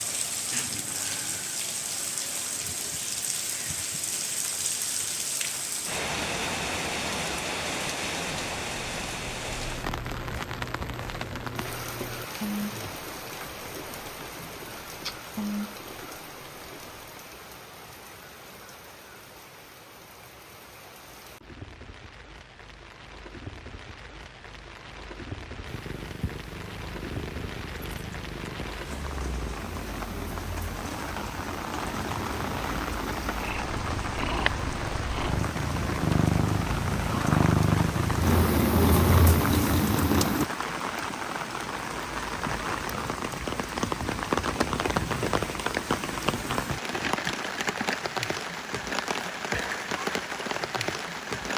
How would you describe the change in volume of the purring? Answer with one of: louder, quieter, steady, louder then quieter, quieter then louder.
louder.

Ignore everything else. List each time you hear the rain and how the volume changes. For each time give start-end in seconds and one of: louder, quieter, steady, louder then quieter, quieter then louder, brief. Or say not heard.
0.0-51.5 quieter then louder.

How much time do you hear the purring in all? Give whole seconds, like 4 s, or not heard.
15 s.